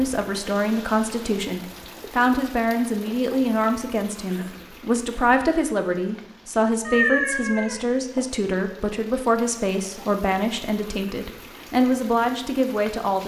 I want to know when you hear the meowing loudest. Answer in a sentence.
The loudest moment of the meowing is at 7 seconds.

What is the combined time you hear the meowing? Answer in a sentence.
You can hear the meowing for 2 seconds altogether.